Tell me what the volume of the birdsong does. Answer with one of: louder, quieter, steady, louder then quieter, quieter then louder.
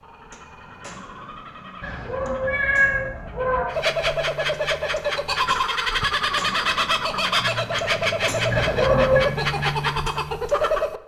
louder.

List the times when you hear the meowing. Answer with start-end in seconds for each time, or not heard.
1.8-3.6, 8.5-9.2.